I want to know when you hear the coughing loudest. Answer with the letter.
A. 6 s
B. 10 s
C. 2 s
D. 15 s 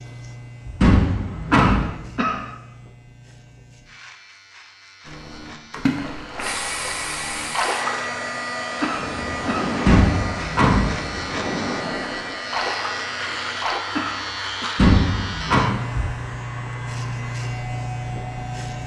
C.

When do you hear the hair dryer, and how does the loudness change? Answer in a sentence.
The hair dryer can be heard from 6.4 to 18.8 s, getting quieter.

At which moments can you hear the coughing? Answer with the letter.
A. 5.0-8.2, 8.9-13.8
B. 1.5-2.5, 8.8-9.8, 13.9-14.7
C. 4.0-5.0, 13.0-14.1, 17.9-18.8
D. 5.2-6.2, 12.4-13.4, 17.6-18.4
B.